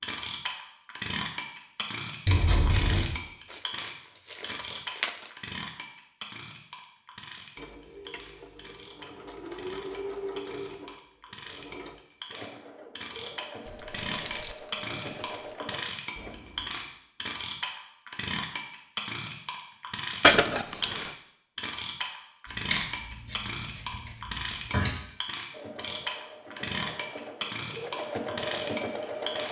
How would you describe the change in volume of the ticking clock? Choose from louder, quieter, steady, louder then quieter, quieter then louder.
quieter then louder.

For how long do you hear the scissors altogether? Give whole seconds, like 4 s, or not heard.
4 s.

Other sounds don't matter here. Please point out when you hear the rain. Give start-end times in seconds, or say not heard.
not heard.